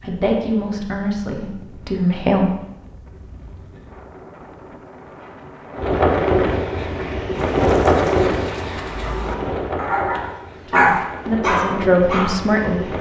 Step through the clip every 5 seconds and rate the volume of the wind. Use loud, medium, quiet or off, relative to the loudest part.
quiet, loud, medium.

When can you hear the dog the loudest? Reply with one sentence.
The volume of the dog peaks at 11 seconds.